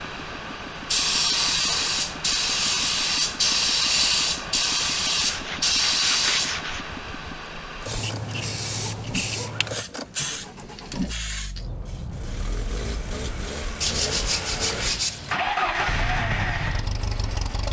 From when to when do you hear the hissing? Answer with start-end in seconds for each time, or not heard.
0.0-13.2.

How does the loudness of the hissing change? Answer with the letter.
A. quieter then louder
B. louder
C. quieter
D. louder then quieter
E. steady
C.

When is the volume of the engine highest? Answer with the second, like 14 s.
16 s.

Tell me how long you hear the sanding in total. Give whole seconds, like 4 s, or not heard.
3 s.